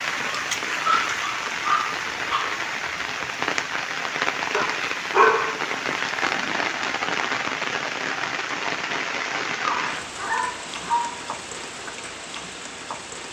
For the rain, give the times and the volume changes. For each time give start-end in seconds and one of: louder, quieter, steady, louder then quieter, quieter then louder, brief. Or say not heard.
0.0-13.2 quieter.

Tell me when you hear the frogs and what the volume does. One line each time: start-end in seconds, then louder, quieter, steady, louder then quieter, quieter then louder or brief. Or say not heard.
not heard.